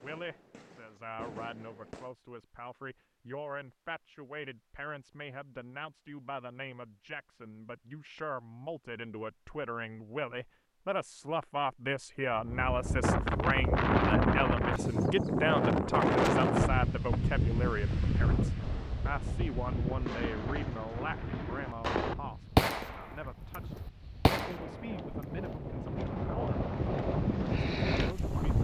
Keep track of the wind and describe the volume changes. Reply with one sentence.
The loudness of the wind goes down, then up.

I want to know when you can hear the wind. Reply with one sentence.
The wind can be heard from 12.3 to 28.5 s.